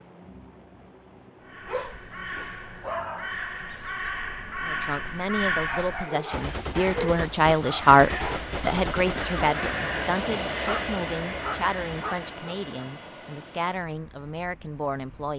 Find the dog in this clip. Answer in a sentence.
The dog can be heard from 1.6 to 3.4 s, from 5.7 to 8.4 s and from 10.7 to 12.8 s.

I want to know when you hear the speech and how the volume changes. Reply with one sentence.
You can hear the speech from 4.6 to 15.3 s, getting louder then quieter.